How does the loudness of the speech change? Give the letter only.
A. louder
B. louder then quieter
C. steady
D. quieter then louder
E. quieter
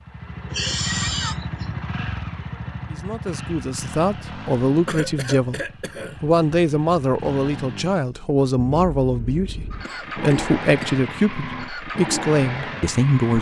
C.